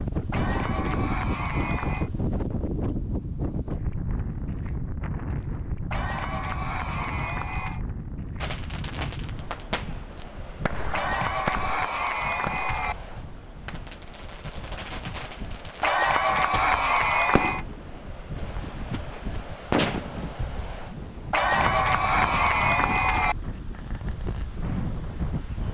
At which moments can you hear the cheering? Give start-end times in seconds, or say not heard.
0.3-2.1, 5.9-7.8, 10.9-12.9, 15.8-17.6, 21.3-23.4.